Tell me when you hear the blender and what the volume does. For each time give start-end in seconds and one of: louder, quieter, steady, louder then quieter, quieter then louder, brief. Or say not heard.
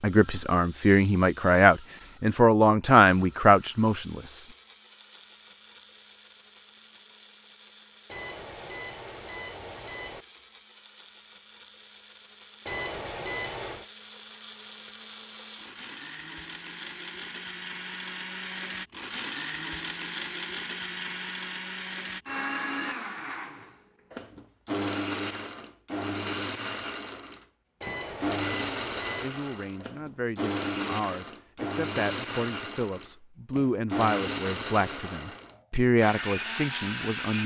0.0-37.4 louder.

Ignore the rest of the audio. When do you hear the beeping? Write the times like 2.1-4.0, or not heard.
8.1-10.2, 12.7-13.9, 27.8-29.3.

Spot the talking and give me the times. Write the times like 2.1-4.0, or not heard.
0.0-4.4, 29.2-37.4.